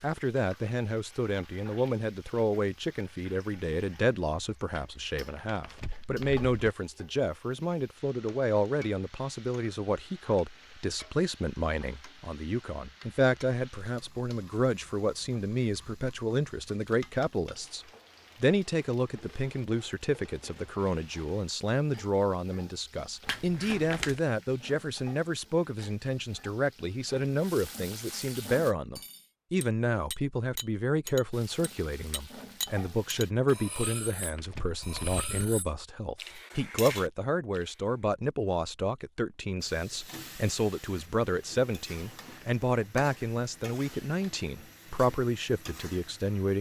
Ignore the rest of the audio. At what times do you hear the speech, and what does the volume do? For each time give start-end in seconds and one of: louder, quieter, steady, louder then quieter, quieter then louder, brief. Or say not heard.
0.0-46.5 steady.